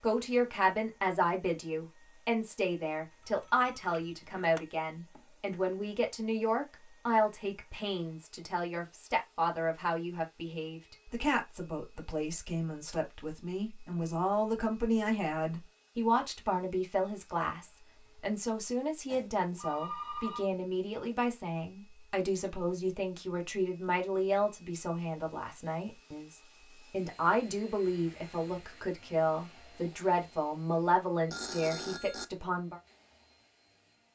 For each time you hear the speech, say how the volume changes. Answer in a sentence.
You can hear the speech from 0.0 to 32.8 s, at a steady volume.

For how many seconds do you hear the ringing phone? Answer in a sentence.
The ringing phone can be heard for 4 seconds in total.